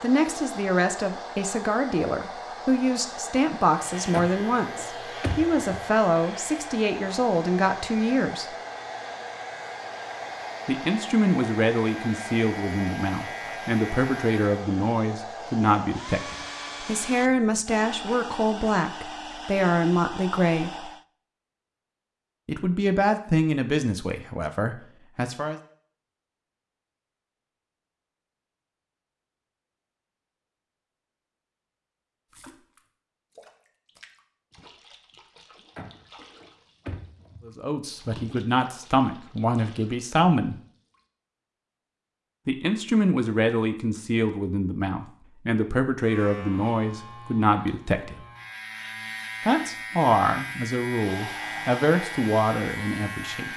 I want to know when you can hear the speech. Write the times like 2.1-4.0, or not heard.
0.0-8.4, 10.7-20.9, 22.4-25.6, 37.5-40.5, 42.5-48.2, 49.4-53.5.